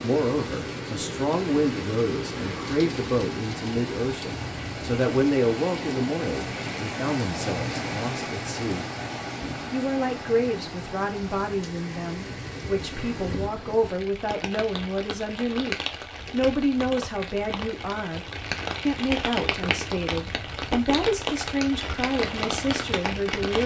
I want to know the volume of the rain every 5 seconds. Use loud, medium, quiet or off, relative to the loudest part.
loud, loud, medium, loud, loud.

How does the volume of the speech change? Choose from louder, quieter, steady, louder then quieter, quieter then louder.
steady.